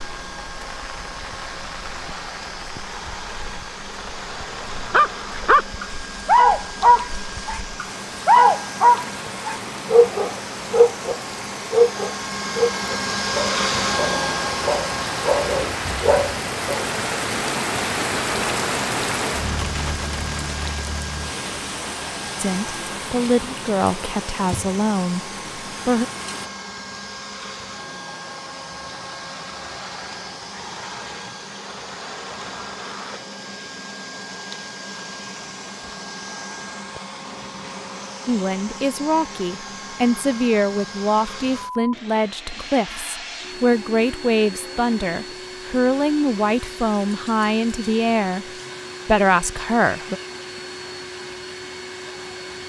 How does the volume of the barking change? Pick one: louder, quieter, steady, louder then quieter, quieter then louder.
quieter.